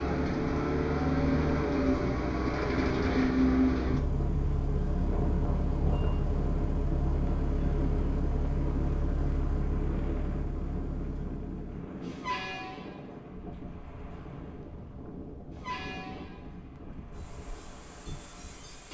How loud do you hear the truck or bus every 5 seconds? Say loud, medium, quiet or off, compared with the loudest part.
loud, medium, quiet, quiet.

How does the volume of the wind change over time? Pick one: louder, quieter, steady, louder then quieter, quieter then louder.
quieter.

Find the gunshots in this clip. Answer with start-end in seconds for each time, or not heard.
not heard.